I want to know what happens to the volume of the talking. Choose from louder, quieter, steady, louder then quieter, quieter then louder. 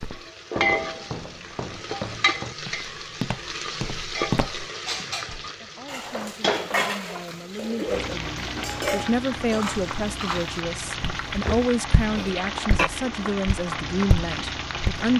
louder.